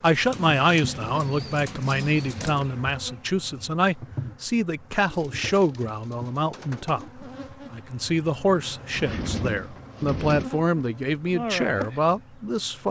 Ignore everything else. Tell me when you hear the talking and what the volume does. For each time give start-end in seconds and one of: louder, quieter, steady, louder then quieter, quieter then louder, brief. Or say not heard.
0.0-12.8 steady.